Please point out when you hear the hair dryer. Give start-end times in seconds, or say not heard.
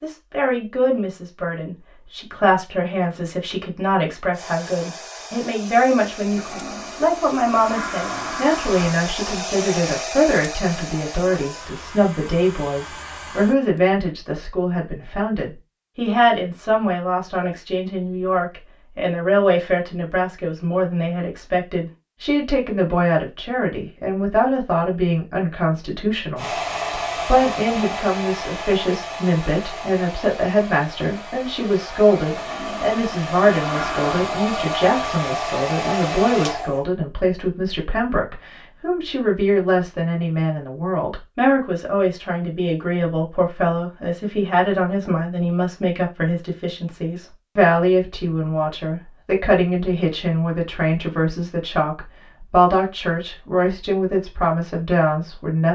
4.3-13.8, 26.4-36.9.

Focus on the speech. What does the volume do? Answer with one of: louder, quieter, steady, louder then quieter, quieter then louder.
steady.